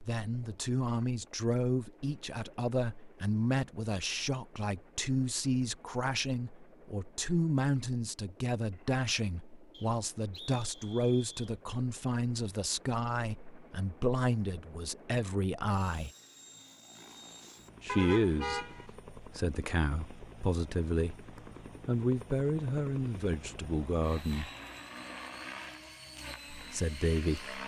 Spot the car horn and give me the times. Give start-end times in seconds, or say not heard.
17.9-18.9.